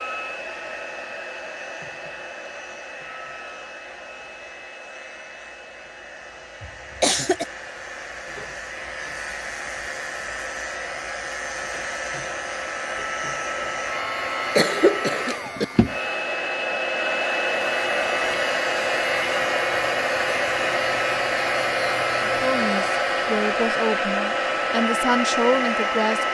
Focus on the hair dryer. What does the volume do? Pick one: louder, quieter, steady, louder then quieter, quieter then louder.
louder.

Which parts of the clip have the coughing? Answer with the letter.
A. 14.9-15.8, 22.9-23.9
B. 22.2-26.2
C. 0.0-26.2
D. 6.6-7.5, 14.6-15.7
D.